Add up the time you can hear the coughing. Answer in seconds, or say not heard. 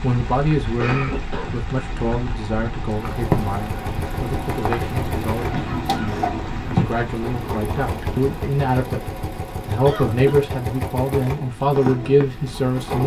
3 s.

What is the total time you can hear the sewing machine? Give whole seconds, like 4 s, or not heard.
10 s.